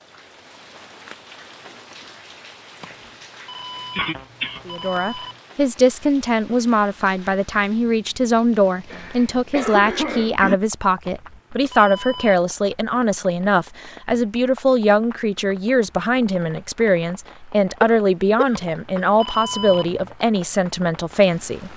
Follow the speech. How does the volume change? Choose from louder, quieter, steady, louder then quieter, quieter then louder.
steady.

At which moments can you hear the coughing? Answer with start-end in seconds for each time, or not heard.
3.9-4.6, 8.9-10.6, 17.8-19.2.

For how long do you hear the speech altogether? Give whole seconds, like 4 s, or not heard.
17 s.